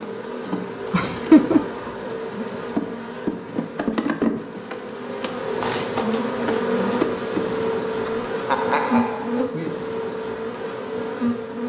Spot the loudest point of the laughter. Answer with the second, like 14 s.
1 s.